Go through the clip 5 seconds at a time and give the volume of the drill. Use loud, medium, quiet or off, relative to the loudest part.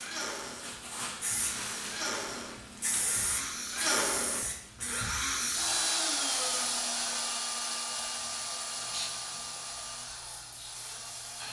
loud, loud, medium.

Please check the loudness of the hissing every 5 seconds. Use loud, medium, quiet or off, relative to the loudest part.
loud, medium, quiet.